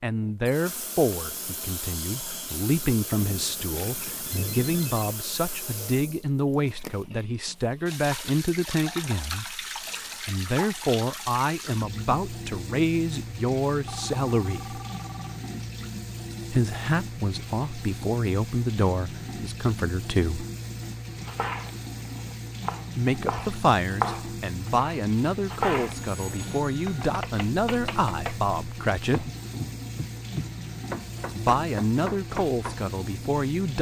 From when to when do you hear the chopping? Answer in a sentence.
The chopping can be heard from 21.1 to 33.0 s.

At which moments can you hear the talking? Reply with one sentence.
You can hear the talking from 0.0 to 14.8 s, from 16.5 to 20.4 s, from 22.9 to 29.3 s and from 31.4 to 33.7 s.